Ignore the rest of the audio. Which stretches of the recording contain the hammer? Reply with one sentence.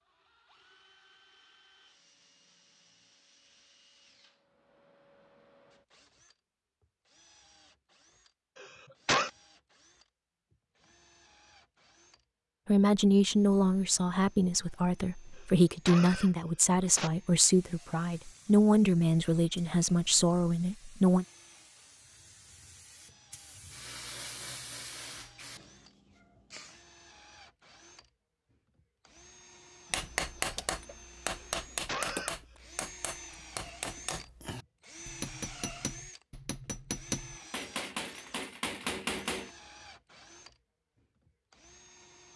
You can hear the hammer from 29.9 to 39.5 s.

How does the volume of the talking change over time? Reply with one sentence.
The loudness of the talking stays about the same.